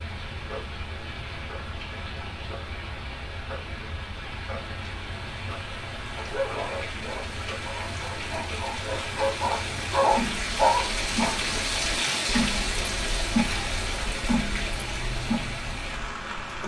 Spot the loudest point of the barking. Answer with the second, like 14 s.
11 s.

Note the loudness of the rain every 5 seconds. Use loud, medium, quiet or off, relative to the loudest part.
medium, medium, loud, medium.